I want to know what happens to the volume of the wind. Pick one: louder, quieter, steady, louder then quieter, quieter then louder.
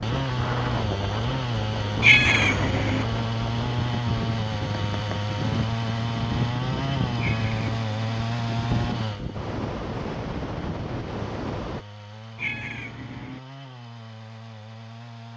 steady.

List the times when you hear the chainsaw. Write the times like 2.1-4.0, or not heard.
0.0-15.3.